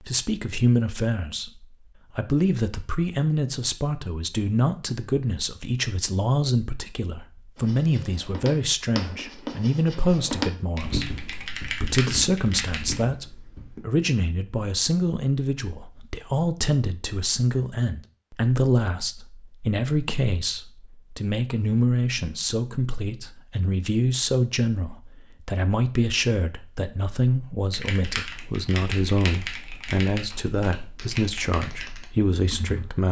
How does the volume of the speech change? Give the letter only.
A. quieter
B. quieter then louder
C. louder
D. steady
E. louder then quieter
D.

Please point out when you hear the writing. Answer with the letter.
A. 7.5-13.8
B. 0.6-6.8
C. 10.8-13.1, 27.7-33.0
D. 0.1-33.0
A.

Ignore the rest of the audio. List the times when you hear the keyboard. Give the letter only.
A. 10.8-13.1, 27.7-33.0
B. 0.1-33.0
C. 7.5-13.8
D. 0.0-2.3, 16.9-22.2
A.